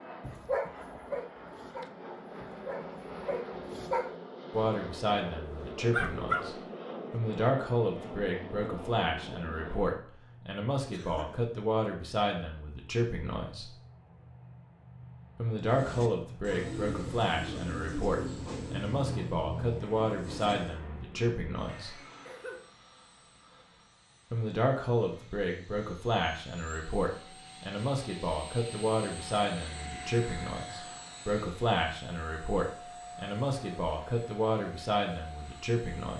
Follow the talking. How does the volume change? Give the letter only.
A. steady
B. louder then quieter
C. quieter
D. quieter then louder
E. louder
A.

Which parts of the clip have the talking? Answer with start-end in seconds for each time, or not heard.
4.5-13.7, 15.3-21.9, 24.3-36.1.